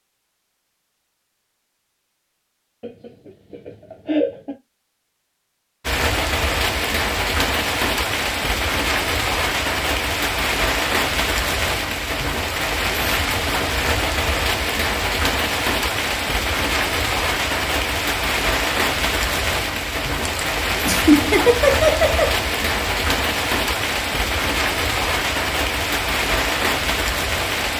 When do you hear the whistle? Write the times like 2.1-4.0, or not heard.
not heard.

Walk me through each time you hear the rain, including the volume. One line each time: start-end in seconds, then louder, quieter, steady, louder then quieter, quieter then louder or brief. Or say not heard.
5.8-27.7 steady.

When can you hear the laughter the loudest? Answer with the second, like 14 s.
21 s.